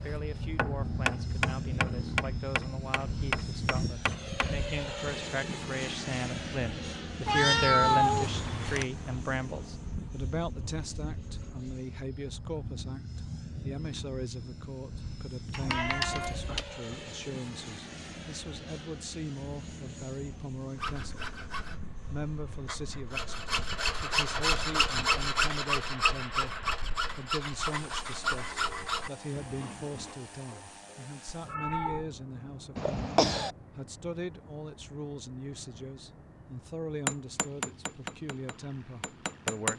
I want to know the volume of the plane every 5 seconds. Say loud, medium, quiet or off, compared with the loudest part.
loud, loud, medium, medium, medium, medium, quiet, quiet.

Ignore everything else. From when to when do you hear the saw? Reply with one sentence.
You can hear the saw from 20.8 to 30.1 s.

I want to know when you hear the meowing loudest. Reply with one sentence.
The volume of the meowing peaks at 8 seconds.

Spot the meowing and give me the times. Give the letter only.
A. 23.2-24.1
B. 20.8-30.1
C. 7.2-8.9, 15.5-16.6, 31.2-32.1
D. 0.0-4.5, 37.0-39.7
C.